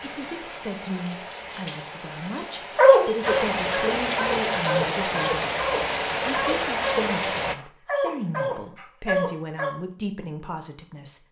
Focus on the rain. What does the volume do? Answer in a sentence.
The volume of the rain goes up.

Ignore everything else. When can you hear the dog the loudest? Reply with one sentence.
The volume of the dog peaks at 3 seconds.